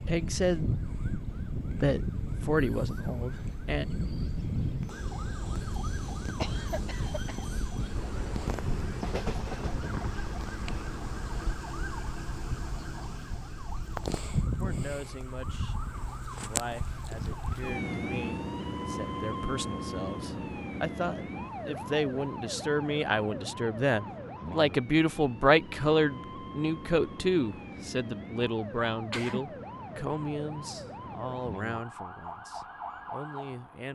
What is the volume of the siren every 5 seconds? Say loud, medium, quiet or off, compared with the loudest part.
loud, loud, loud, loud, loud, medium, medium.